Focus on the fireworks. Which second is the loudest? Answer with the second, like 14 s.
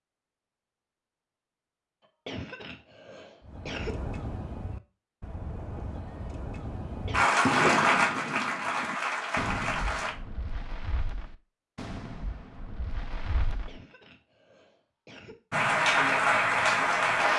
8 s.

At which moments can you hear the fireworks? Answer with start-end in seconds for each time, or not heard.
3.5-13.8.